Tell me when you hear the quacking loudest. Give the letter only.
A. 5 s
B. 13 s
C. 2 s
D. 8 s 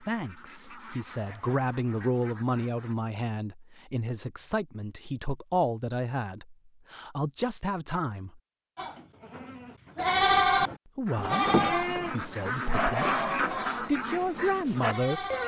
B.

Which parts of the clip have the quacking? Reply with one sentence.
You can hear the quacking from 0.0 to 3.0 s and from 11.1 to 15.4 s.